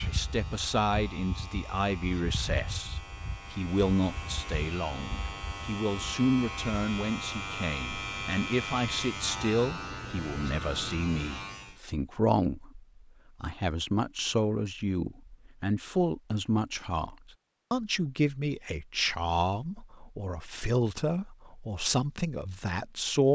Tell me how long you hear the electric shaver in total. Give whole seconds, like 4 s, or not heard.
12 s.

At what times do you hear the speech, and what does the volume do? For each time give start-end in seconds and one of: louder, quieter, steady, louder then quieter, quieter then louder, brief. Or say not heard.
0.1-23.3 steady.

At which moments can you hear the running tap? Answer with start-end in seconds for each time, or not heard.
not heard.